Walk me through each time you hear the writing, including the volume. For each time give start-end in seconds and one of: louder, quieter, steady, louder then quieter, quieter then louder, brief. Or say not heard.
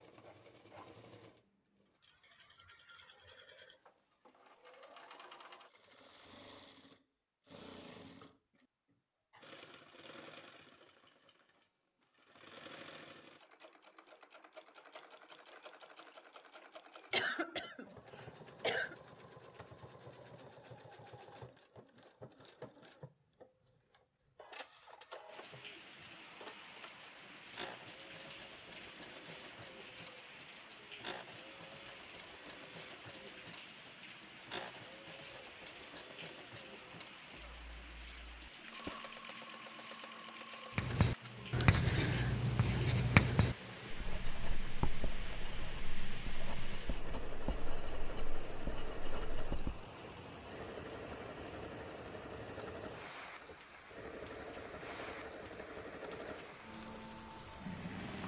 40.8-49.9 quieter.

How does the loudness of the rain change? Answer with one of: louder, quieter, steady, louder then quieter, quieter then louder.
steady.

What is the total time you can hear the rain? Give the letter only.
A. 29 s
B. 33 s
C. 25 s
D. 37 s
B.